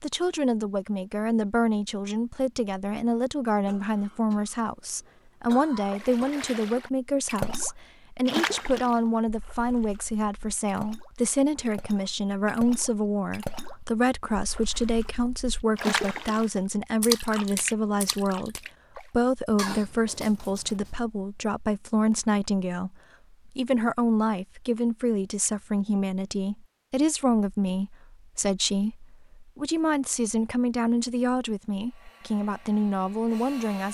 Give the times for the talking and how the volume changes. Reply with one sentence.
You can hear the talking from 0.0 to 33.8 s, at a steady volume.